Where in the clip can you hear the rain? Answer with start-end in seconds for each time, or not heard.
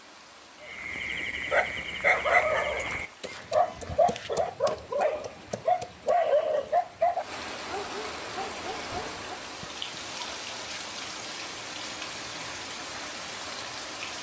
0.0-14.1.